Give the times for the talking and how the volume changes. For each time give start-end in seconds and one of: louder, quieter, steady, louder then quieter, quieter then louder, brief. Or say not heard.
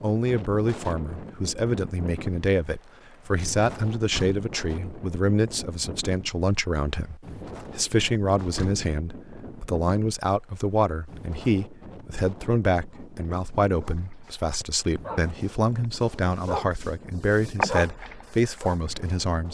0.0-19.4 steady.